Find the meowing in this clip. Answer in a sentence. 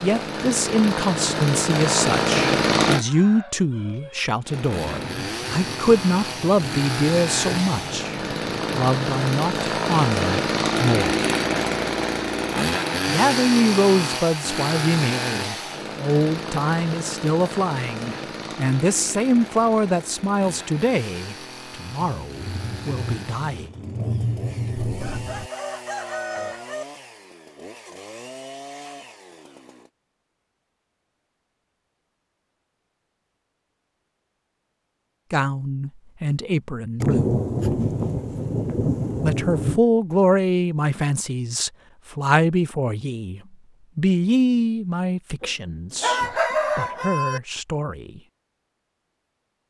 You can't hear the meowing here.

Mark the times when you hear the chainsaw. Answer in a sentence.
The chainsaw can be heard from 0.0 to 3.0 s and from 4.5 to 29.9 s.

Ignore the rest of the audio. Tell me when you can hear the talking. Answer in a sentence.
The talking can be heard from 0.0 to 11.2 s, from 13.1 to 23.7 s, from 35.3 to 37.4 s and from 39.2 to 48.2 s.